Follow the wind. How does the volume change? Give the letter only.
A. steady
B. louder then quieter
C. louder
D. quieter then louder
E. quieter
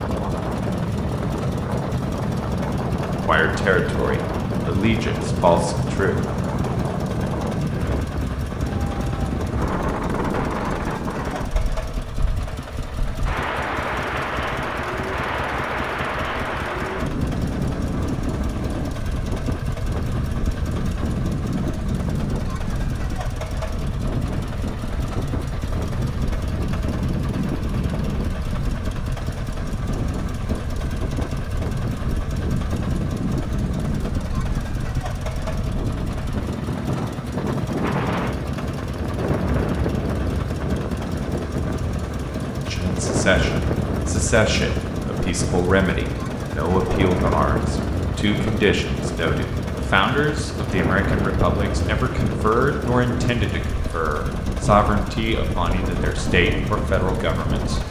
A.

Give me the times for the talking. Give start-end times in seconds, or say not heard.
3.2-6.7, 42.6-57.8.